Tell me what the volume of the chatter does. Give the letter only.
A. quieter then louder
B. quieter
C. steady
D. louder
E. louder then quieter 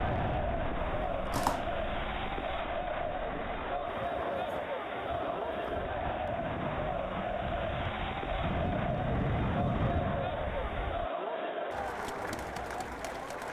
C.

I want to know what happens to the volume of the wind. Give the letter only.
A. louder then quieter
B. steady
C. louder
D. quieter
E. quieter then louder
C.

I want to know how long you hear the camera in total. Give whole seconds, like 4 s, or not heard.
2 s.